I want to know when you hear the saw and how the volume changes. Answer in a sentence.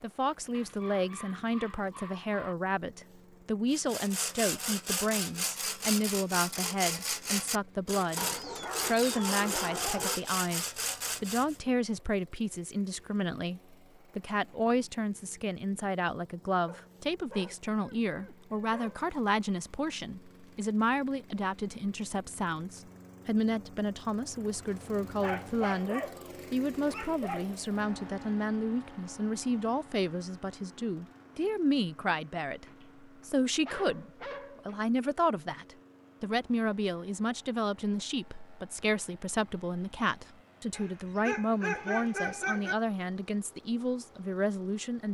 You can hear the saw from 3.7 to 11.6 s, at a steady volume.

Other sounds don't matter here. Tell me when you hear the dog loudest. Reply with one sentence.
The loudest moment of the dog is at 42 seconds.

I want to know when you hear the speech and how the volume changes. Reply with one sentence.
You can hear the speech from 0.0 to 32.6 s, at a steady volume; and from 33.2 to 45.0 s, at a steady volume.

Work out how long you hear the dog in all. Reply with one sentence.
You can hear the dog for 13 seconds altogether.